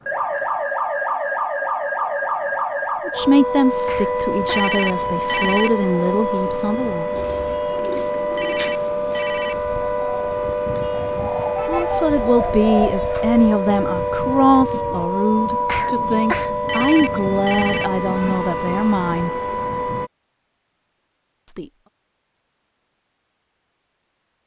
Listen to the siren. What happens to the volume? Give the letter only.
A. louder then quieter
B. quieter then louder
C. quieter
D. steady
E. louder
D.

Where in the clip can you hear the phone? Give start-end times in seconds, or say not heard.
4.5-5.8, 8.3-9.7, 16.6-17.9.